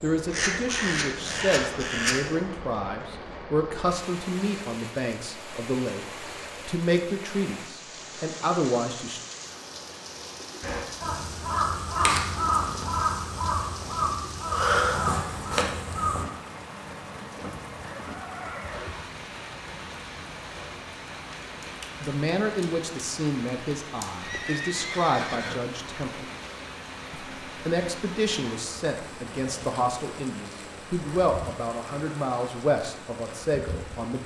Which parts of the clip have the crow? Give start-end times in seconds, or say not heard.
0.0-2.4, 10.6-16.2.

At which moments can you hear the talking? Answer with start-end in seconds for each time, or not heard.
0.0-9.2, 22.0-26.2, 27.1-34.2.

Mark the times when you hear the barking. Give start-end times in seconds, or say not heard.
not heard.